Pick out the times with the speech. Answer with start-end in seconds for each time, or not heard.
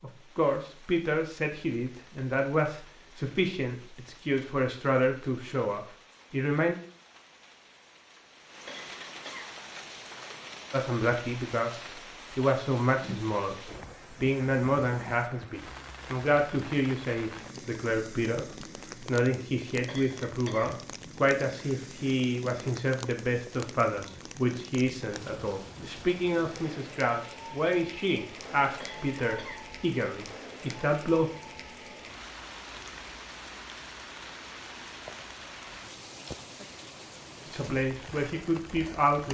0.0-6.8, 10.7-31.3, 37.5-39.2.